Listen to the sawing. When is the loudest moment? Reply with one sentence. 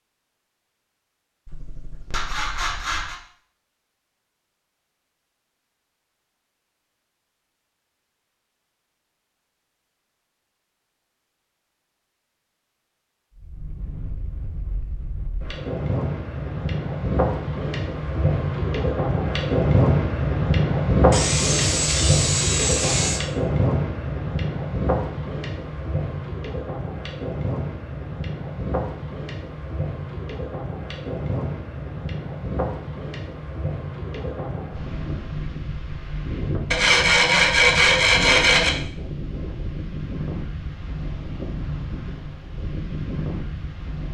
The loudest moment of the sawing is at 38 seconds.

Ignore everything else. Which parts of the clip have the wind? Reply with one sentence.
The wind can be heard from 13.3 to 44.0 s.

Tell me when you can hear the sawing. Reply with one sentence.
The sawing can be heard from 1.4 to 3.2 s, from 21.1 to 23.2 s and from 36.7 to 38.7 s.